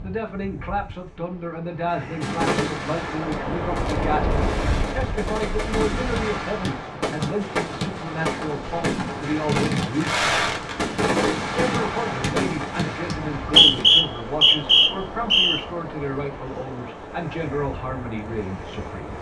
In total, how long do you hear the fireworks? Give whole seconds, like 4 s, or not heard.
12 s.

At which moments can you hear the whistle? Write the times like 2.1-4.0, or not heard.
13.2-15.6.